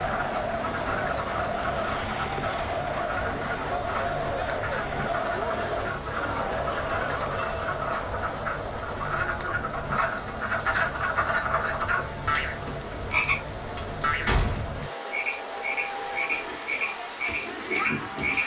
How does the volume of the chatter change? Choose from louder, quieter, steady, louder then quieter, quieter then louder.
quieter.